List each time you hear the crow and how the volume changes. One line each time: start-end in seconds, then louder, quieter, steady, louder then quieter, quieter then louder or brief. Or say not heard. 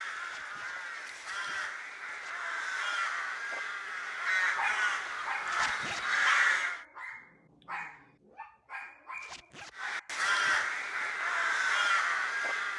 0.0-6.8 louder
9.8-12.7 brief.